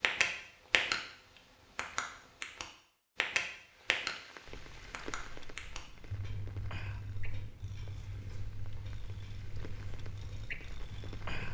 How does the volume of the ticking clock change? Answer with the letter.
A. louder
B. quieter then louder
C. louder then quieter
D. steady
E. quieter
E.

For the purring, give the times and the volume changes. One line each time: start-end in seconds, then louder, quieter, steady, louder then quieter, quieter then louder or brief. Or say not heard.
4.5-11.4 louder.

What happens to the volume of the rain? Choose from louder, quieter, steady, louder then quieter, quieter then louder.
quieter.